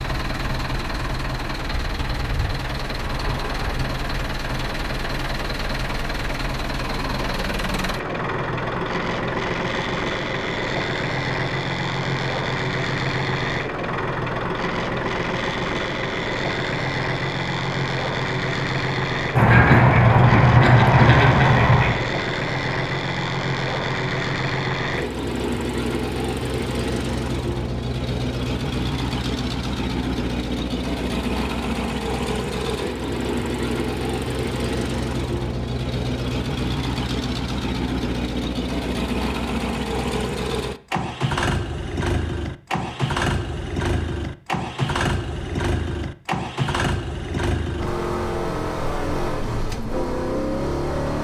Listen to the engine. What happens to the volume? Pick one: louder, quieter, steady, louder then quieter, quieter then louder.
steady.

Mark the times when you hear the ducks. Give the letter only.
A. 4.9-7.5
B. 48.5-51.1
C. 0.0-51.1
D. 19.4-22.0
D.